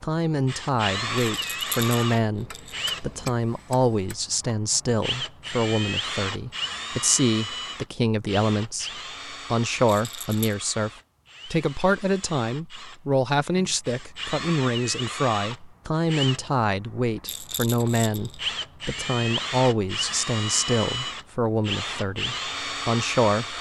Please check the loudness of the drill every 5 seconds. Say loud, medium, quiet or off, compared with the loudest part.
loud, loud, medium, loud, loud.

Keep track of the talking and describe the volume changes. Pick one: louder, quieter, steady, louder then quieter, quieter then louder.
steady.